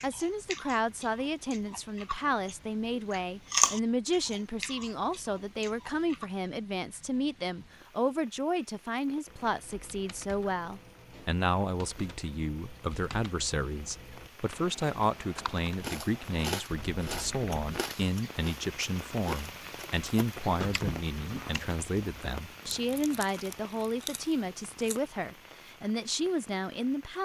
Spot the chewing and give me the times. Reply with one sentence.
You can hear the chewing from 0.0 to 6.2 s and from 15.8 to 25.0 s.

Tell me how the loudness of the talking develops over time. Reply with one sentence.
The loudness of the talking stays about the same.